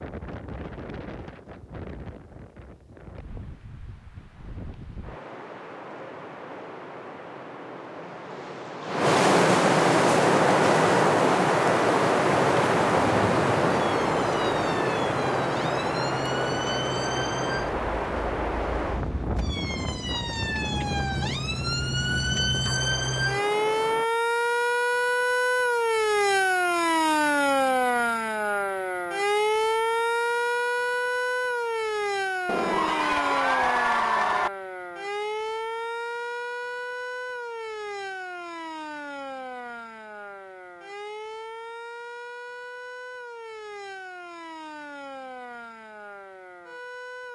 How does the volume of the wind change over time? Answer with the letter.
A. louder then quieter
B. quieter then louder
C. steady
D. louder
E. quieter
A.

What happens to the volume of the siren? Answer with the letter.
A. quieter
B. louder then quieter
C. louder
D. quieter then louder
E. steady
B.